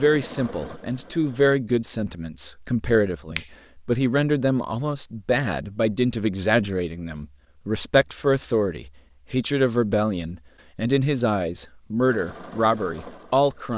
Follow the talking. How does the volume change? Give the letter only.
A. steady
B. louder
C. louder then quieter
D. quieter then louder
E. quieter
A.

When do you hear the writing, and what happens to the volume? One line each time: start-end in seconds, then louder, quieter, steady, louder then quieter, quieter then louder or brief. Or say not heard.
not heard.